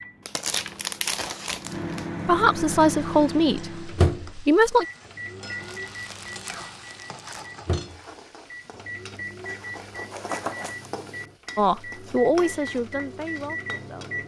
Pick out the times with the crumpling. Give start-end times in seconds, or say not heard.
0.2-2.0, 5.6-7.5, 10.1-10.9.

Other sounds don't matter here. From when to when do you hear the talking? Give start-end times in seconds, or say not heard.
2.2-4.8, 11.6-14.2.